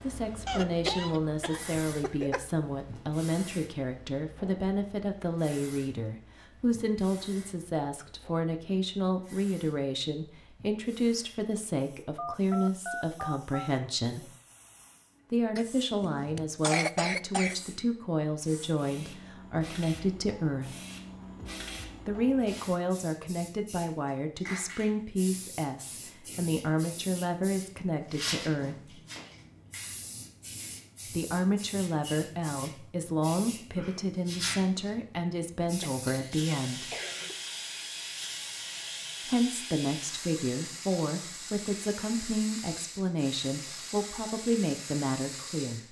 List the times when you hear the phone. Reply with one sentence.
You can hear the phone from 12.2 to 13.7 s.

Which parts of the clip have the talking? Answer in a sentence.
You can hear the talking from 0.0 to 14.3 s, from 15.3 to 20.7 s, from 22.1 to 28.9 s, from 31.1 to 36.9 s and from 39.2 to 45.8 s.